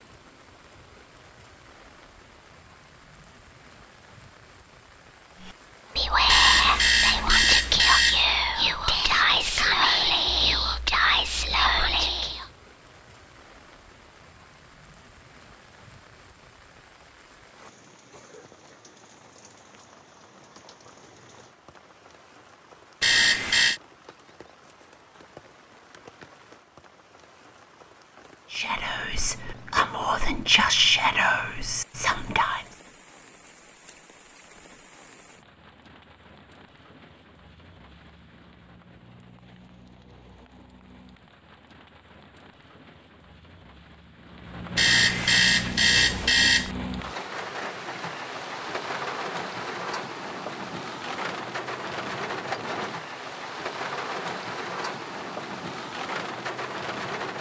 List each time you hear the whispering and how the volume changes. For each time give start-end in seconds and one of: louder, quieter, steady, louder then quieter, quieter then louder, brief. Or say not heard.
5.5-12.4 steady
28.5-32.8 louder then quieter.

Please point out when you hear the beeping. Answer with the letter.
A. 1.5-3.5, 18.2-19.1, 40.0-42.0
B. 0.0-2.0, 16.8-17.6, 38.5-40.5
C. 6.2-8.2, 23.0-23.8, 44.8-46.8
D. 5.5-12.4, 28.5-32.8
C.